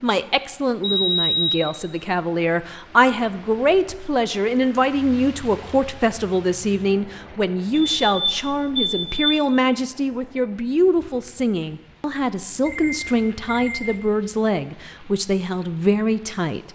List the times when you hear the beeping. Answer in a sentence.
You can hear the beeping from 0.8 to 1.8 s, from 7.7 to 9.3 s and from 12.7 to 14.0 s.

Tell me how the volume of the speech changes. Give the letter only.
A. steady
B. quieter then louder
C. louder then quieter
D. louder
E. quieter
A.